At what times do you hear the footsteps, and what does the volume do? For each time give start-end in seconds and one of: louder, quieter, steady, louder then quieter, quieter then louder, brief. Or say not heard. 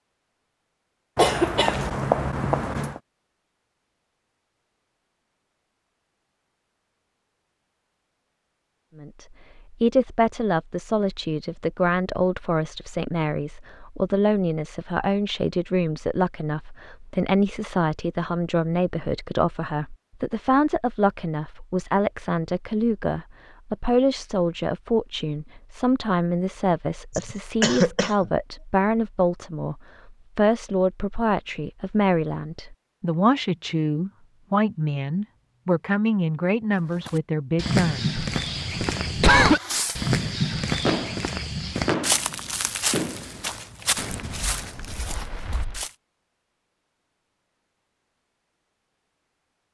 37.0-45.9 quieter.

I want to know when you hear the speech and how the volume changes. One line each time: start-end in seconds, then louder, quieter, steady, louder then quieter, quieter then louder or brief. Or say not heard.
8.9-38.1 steady.